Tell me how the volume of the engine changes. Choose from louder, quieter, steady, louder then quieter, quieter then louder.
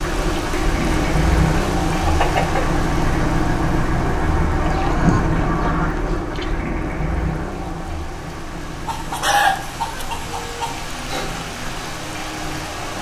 quieter.